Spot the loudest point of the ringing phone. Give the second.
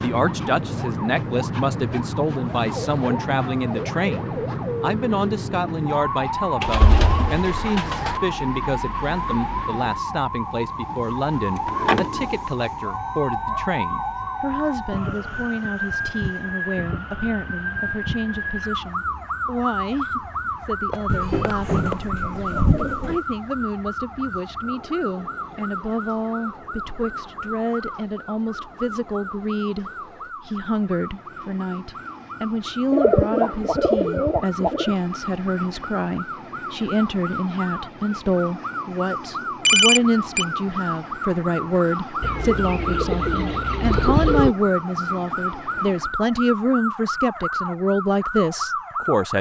40 s.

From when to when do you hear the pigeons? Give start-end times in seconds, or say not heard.
6.6-8.2, 11.6-12.4, 21.1-23.2, 32.9-35.0, 42.2-44.5.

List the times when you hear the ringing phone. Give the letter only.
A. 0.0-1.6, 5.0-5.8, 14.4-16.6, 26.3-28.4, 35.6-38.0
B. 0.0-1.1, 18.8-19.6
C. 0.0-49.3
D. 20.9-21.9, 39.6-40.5
D.